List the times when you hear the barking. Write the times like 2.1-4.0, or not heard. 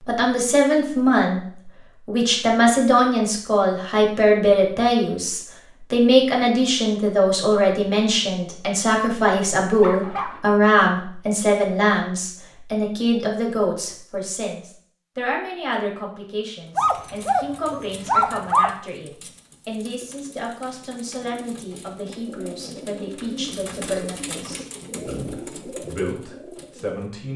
9.8-10.4, 16.8-18.7.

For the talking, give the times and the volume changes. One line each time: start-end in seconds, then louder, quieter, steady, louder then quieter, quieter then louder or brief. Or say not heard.
0.1-1.4 brief
2.0-27.3 quieter.